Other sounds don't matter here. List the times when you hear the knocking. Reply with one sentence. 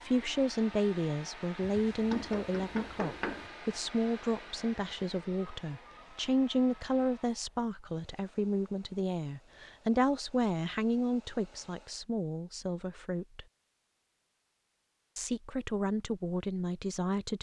The knocking can be heard from 1.6 to 3.5 s.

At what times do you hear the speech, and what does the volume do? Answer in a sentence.
The speech can be heard from 0.0 to 13.4 s, at a steady volume; and briefly from 15.2 to 17.3 s.